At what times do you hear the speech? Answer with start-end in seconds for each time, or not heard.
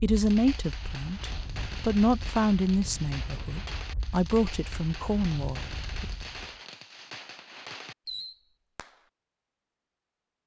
0.0-6.0.